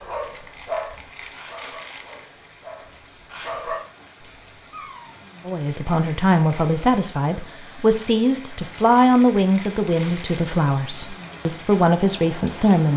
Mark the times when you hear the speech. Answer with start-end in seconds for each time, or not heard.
5.5-12.9.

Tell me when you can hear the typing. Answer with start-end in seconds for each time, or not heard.
not heard.